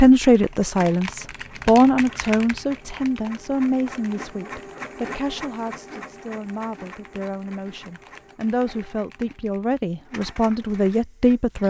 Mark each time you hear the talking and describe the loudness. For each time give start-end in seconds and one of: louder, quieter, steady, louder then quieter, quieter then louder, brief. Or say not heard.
0.0-11.6 quieter then louder.